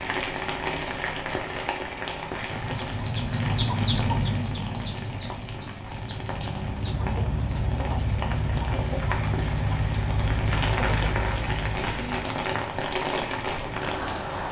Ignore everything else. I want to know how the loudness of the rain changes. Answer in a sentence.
The loudness of the rain goes down, then up.